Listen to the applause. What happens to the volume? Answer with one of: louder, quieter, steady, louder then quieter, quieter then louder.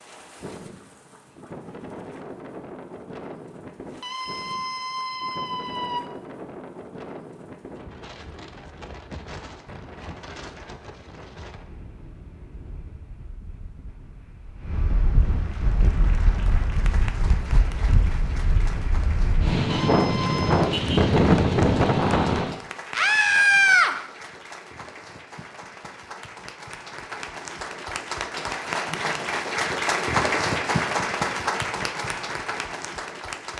louder.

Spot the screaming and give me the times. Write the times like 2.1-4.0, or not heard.
4.0-6.0, 19.7-20.7, 22.9-23.9.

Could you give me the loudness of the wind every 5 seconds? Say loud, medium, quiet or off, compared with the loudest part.
quiet, quiet, quiet, medium, loud, off, off.